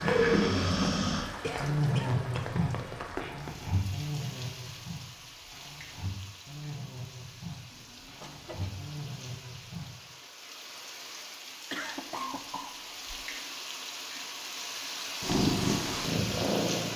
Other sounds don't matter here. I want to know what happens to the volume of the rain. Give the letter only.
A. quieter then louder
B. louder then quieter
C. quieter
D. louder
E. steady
A.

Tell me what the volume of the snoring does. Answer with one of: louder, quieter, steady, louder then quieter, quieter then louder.
quieter.